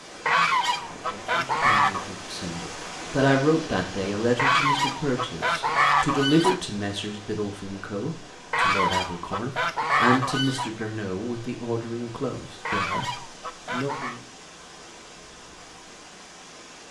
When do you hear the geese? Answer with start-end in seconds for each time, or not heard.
0.2-2.0, 4.3-6.6, 8.5-10.7, 12.7-14.2.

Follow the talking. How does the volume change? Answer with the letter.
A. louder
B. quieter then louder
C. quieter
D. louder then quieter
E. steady
C.